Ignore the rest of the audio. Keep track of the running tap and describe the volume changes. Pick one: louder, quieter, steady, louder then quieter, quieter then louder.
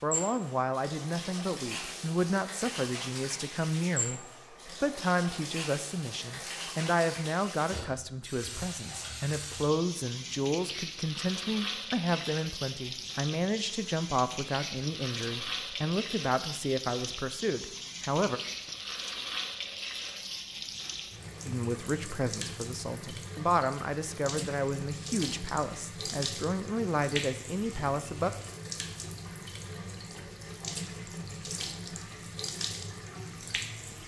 steady.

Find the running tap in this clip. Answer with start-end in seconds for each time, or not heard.
0.0-34.0.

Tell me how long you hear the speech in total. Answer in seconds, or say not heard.
25 s.